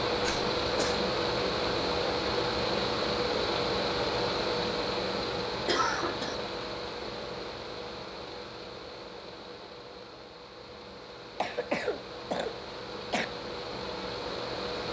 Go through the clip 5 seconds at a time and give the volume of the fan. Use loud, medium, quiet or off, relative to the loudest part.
loud, medium, medium.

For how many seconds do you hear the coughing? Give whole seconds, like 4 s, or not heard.
3 s.